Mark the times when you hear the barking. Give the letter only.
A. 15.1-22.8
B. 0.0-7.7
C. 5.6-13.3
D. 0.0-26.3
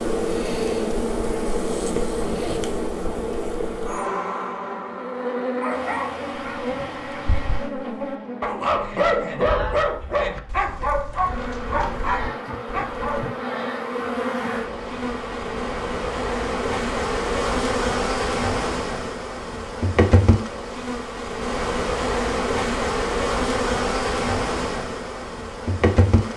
C.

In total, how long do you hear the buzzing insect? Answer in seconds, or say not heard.
26 s.